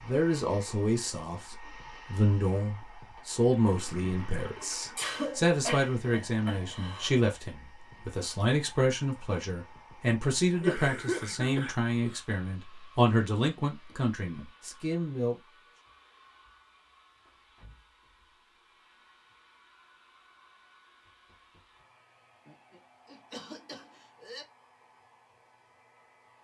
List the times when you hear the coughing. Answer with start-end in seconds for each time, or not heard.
5.0-7.1, 10.5-12.2, 22.4-24.4.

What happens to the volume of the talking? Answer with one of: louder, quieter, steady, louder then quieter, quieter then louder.
steady.